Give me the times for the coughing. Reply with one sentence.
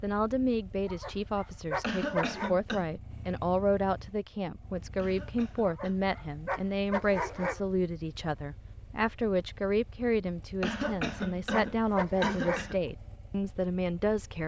You can hear the coughing from 1.8 to 2.9 s, from 5.0 to 5.8 s and from 10.6 to 12.8 s.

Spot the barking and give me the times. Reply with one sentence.
You can hear the barking from 0.8 to 2.5 s, from 5.6 to 7.6 s and from 10.7 to 12.7 s.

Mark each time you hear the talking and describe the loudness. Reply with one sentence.
The talking can be heard from 0.0 to 14.4 s, at a steady volume.